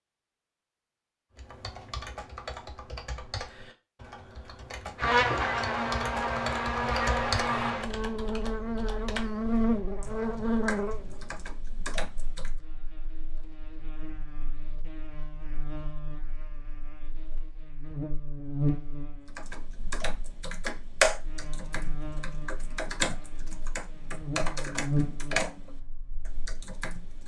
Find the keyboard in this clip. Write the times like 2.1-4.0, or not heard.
1.4-12.5, 19.2-27.2.